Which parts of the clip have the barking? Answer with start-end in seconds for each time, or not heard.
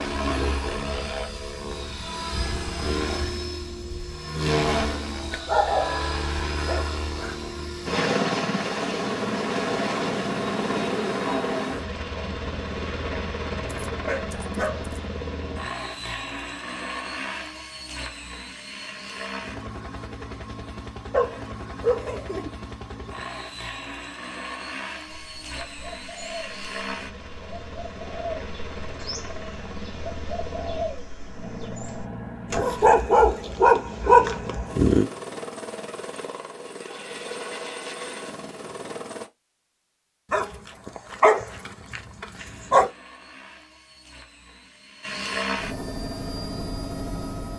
5.3-7.3, 13.8-14.9, 21.1-22.5, 32.5-35.0, 40.3-42.9.